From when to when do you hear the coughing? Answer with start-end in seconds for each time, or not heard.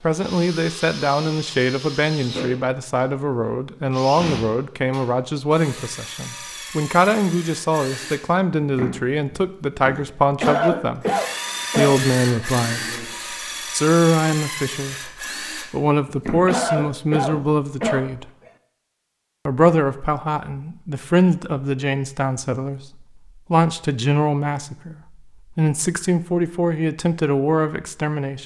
10.4-12.4, 16.4-18.5.